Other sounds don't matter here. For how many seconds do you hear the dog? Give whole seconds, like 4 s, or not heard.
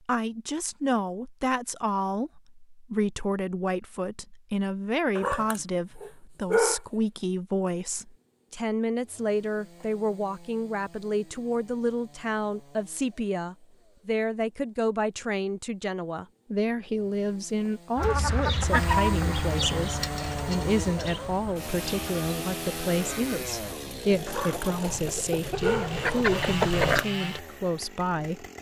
4 s.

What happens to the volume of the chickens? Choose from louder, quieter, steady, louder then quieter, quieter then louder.
quieter then louder.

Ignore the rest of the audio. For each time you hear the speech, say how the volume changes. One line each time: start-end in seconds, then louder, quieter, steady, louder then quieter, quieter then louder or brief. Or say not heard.
0.1-28.5 steady.